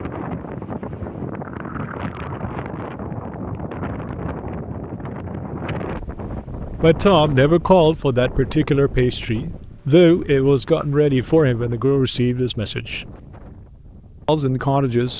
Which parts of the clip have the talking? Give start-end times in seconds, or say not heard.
6.8-13.1, 14.2-15.1.